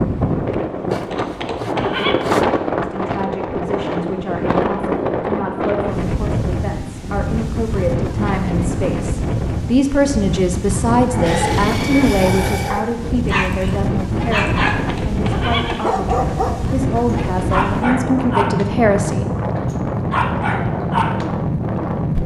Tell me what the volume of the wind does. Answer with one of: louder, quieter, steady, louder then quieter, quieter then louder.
steady.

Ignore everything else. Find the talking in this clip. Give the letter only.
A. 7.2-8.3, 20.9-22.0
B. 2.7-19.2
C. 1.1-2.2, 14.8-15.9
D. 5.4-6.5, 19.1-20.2
B.